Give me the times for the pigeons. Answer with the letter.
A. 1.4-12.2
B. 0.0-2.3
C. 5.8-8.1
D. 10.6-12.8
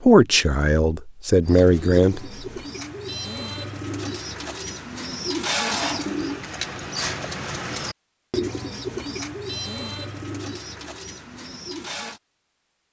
A.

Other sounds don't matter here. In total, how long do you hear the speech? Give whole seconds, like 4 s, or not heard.
2 s.